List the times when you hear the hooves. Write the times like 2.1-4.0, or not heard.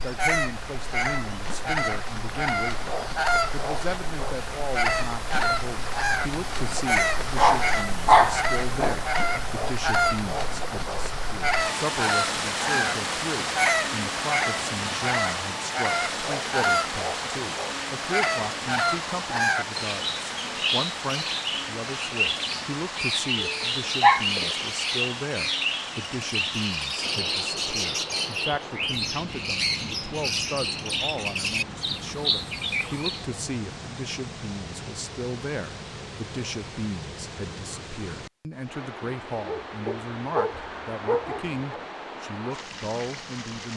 not heard.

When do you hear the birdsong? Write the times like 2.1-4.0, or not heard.
0.0-33.2.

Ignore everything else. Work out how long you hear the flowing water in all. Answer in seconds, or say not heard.
44 s.